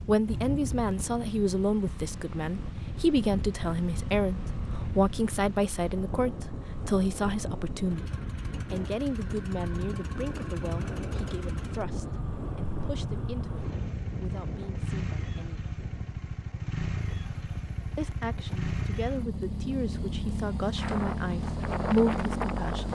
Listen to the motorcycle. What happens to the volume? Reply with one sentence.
The loudness of the motorcycle goes up.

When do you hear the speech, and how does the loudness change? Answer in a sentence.
The speech can be heard from 0.1 to 15.7 s, getting quieter; and from 17.9 to 22.8 s, getting louder.